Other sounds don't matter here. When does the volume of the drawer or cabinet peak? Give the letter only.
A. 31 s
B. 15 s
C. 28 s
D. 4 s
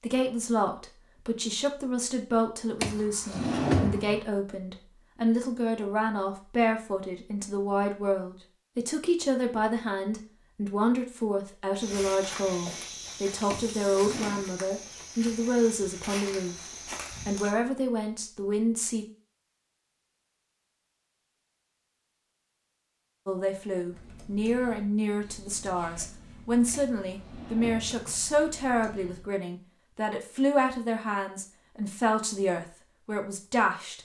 D.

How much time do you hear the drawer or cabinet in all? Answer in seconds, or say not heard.
4 s.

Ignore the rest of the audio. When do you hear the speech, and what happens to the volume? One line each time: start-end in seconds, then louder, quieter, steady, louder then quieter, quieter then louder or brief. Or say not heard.
0.0-16.6 steady
17.2-19.1 brief
23.2-34.0 steady.